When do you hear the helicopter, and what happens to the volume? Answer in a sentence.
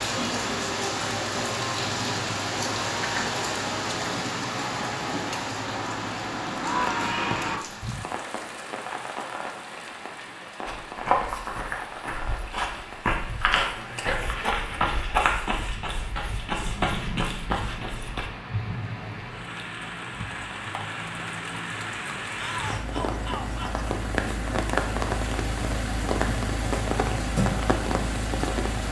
You can't hear the helicopter here.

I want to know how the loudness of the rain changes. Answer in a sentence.
The loudness of the rain goes down, then up.